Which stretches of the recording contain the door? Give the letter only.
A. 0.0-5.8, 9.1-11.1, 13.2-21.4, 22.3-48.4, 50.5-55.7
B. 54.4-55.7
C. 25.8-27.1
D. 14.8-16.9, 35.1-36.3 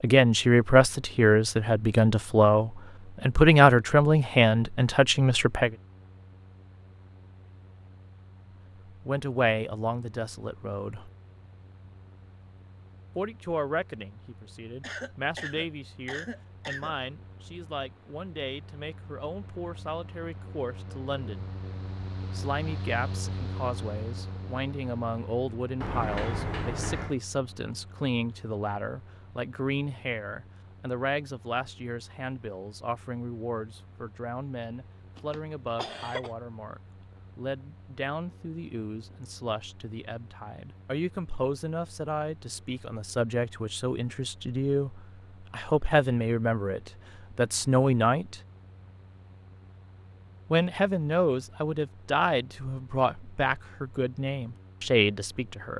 C.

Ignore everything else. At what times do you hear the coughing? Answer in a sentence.
The coughing can be heard from 14.8 to 16.9 s and from 35.1 to 36.3 s.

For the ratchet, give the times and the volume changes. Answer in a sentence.
You can't hear the ratchet here.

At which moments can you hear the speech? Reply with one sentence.
The speech can be heard from 0.0 to 5.8 s, from 9.1 to 11.1 s, from 13.2 to 21.4 s, from 22.3 to 48.4 s and from 50.5 to 55.7 s.